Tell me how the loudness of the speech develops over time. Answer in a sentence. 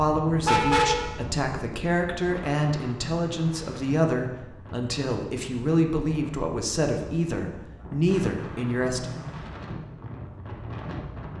The volume of the speech stays about the same.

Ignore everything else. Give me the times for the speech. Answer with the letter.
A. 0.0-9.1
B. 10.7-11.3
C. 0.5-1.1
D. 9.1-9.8
A.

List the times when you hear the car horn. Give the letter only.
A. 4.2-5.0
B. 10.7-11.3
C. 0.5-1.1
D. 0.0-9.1
C.